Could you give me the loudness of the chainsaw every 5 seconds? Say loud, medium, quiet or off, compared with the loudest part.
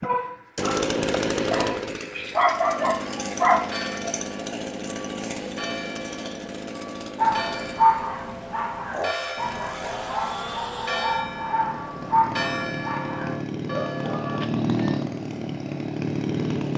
loud, medium, loud, loud.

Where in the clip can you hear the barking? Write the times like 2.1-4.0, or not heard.
0.0-4.0, 7.2-14.4.